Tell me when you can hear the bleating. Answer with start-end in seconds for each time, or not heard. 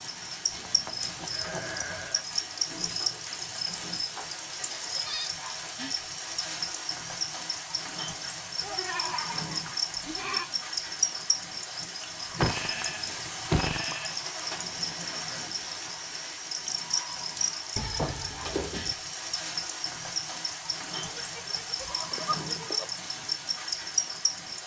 0.5-2.2, 4.8-6.0, 8.6-10.4, 12.3-14.2, 17.8-18.9, 20.9-22.9.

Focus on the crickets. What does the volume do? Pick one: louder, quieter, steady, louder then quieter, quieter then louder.
steady.